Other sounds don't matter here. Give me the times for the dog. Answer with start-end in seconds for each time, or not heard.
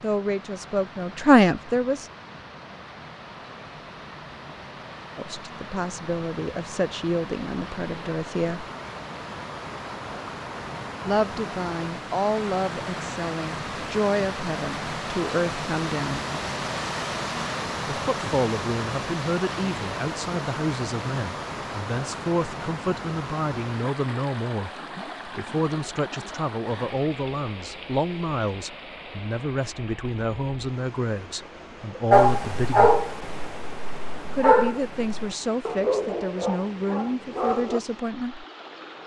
32.1-37.8.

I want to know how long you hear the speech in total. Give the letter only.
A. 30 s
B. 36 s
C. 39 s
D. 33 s
A.